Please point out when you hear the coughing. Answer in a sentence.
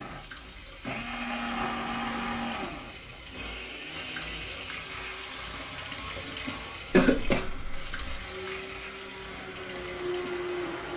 The coughing can be heard from 6.9 to 8.2 s.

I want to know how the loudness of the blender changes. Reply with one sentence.
The loudness of the blender goes down, then up.